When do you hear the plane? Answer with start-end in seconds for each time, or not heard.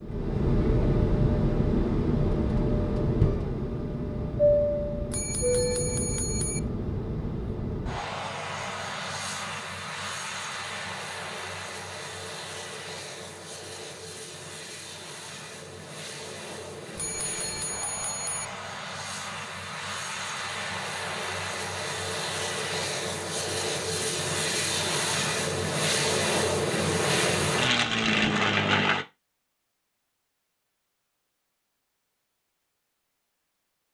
0.0-29.1.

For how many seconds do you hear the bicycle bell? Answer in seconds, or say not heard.
3 s.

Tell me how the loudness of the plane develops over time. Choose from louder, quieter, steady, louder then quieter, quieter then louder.
quieter then louder.